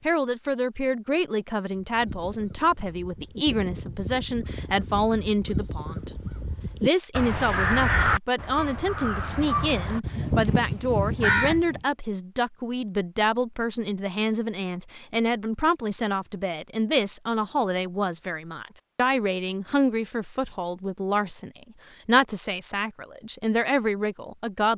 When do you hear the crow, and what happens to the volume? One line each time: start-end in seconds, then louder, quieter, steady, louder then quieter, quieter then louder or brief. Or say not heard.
1.8-11.8 louder.